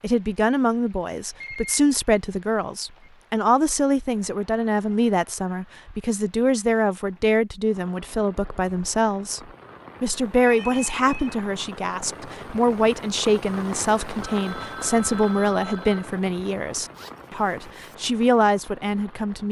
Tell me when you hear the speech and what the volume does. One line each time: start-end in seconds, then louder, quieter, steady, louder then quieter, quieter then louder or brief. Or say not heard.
0.0-9.4 steady
10.0-19.4 steady.